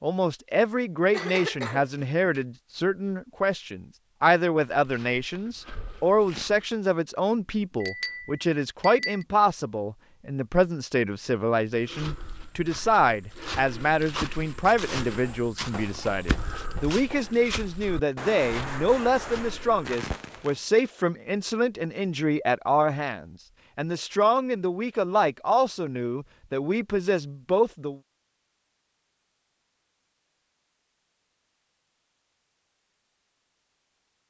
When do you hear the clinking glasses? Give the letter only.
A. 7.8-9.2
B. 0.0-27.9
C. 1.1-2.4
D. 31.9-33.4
A.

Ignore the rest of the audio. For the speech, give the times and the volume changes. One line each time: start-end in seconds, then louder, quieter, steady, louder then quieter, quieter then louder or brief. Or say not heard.
0.0-27.9 steady.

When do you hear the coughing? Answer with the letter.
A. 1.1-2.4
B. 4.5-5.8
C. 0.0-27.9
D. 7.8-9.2
A.